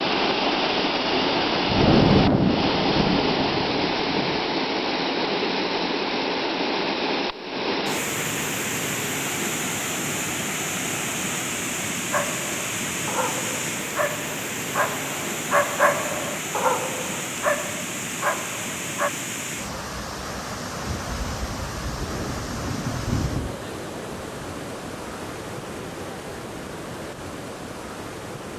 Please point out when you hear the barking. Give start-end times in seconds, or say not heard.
12.1-19.1.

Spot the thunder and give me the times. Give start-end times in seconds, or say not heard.
1.1-4.4, 20.9-23.6.